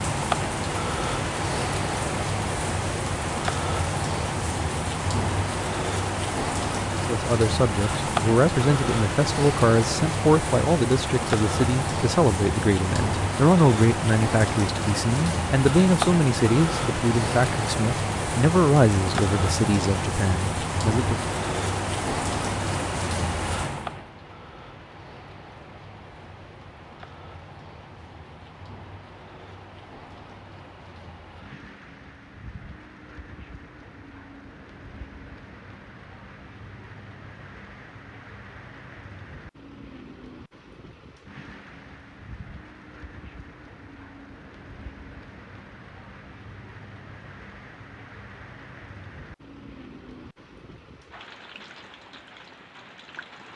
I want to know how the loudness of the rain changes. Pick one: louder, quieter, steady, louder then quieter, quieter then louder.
quieter.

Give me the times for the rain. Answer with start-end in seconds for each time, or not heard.
0.0-53.5.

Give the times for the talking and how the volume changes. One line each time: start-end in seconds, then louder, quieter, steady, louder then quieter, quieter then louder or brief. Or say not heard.
6.9-21.3 steady.